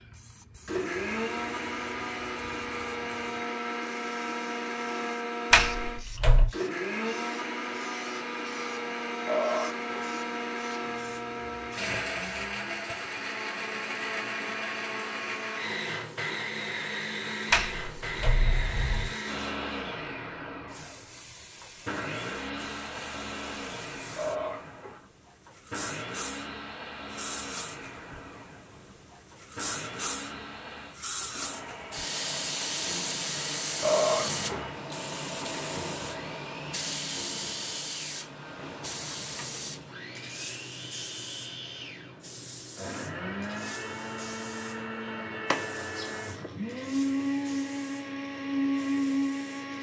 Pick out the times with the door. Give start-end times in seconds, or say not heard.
5.5-6.5, 17.5-19.1, 45.5-46.5.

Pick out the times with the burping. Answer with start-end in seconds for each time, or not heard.
9.2-10.1, 24.1-25.0, 33.8-34.6.